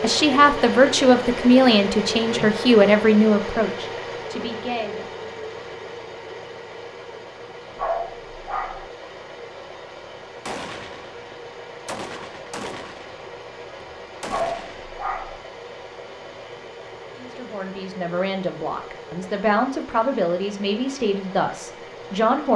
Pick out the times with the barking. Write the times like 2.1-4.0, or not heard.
7.8-8.8, 14.2-15.4.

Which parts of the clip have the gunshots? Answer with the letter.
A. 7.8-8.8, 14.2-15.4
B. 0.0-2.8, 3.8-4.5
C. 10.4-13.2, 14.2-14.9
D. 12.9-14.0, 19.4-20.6
C.